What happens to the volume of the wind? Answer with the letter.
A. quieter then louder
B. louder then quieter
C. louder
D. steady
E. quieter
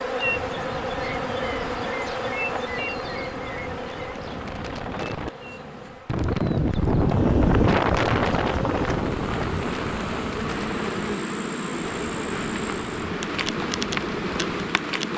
B.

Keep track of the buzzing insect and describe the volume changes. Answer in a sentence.
The loudness of the buzzing insect goes down, then up.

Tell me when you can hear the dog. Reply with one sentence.
The dog can't be heard in this clip.